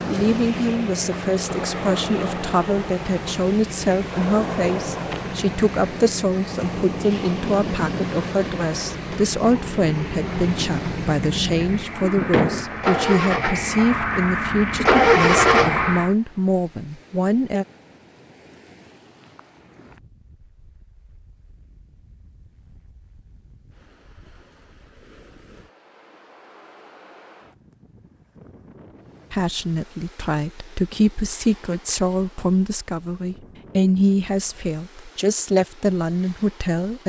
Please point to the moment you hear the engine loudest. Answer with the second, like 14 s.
15 s.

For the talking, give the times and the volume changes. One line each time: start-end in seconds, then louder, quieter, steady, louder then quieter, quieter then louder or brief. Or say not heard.
0.1-17.6 steady
29.3-37.0 steady.